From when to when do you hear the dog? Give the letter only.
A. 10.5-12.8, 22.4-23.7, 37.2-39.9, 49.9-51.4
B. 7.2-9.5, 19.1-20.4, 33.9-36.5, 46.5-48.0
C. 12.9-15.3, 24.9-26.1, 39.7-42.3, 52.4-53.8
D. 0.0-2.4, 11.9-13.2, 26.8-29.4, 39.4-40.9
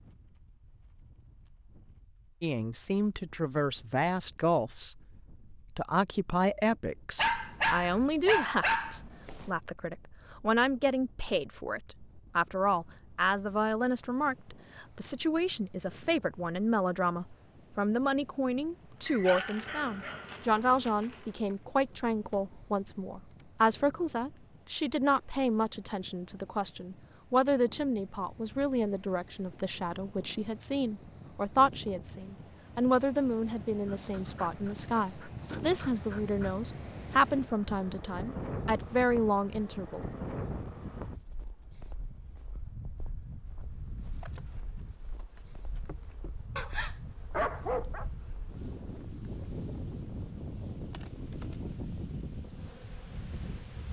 B.